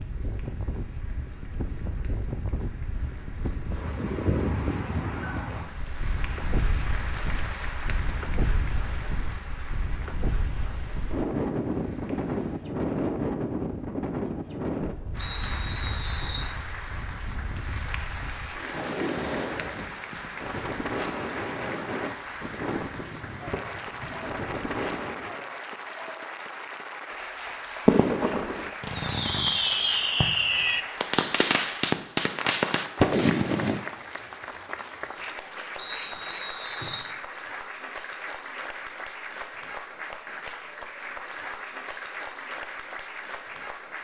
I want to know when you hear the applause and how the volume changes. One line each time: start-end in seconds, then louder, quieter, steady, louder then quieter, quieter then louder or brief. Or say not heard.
0.0-12.7 louder then quieter
15.1-43.9 steady.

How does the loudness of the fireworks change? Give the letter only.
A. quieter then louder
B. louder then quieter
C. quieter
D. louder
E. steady
D.